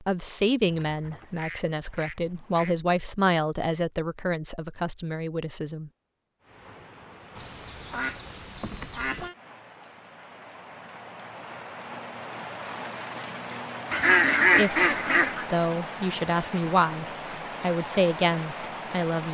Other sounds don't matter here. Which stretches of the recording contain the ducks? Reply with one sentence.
The ducks can be heard from 0.7 to 2.8 s, from 7.3 to 9.3 s and from 13.9 to 15.4 s.